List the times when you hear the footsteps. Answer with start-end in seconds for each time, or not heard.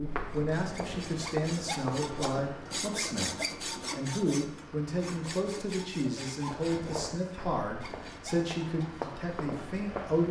0.0-2.6, 6.5-10.2.